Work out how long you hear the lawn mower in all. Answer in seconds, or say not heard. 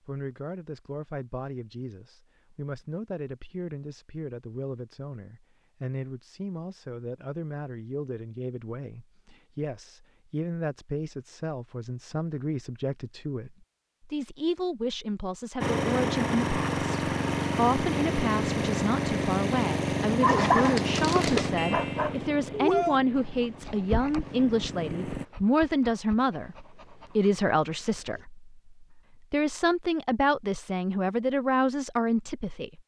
10 s.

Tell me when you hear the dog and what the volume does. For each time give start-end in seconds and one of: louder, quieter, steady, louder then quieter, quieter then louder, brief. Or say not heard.
20.2-28.2 quieter.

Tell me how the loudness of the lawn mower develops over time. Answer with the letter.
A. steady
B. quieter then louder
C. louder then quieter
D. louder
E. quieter
E.